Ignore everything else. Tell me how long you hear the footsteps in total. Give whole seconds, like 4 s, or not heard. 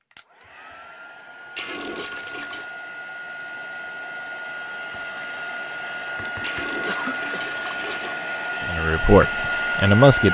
not heard.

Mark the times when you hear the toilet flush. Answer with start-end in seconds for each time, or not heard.
1.6-2.7, 6.4-8.2.